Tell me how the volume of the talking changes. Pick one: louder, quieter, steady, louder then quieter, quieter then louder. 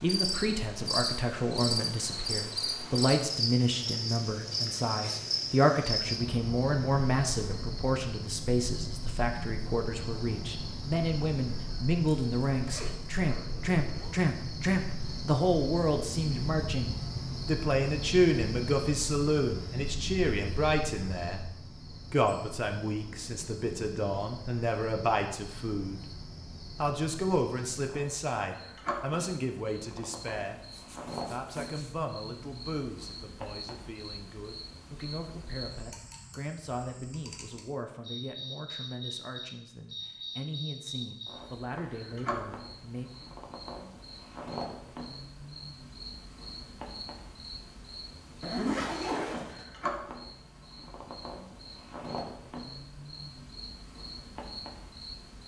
quieter.